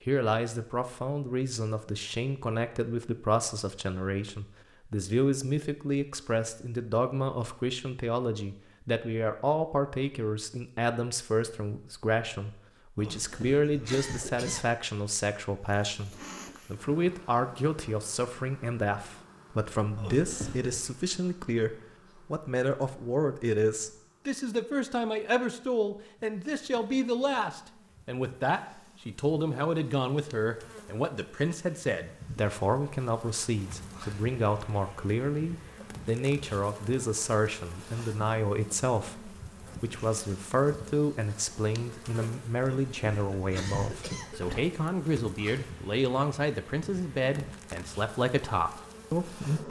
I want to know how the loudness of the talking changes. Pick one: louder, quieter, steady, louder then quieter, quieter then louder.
steady.